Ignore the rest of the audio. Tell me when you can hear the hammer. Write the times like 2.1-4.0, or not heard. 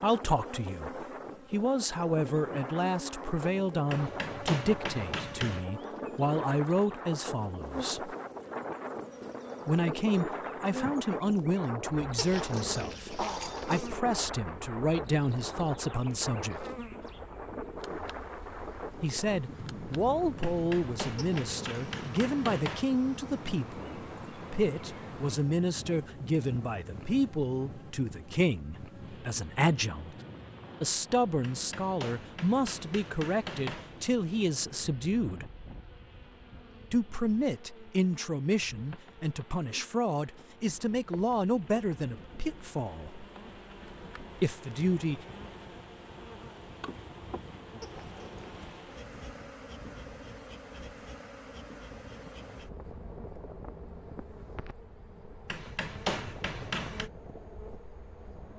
3.9-5.7, 20.4-22.9, 31.4-34.1, 55.5-57.1.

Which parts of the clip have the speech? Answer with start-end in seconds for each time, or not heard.
0.0-8.2, 9.7-16.6, 19.0-30.1, 30.8-35.5, 36.9-43.2, 44.4-45.2.